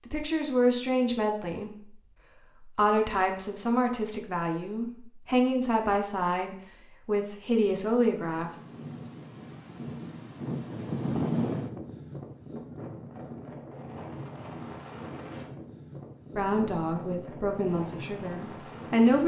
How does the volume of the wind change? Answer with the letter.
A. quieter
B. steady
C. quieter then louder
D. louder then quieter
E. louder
D.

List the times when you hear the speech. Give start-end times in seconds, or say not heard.
0.1-8.6, 16.4-19.2.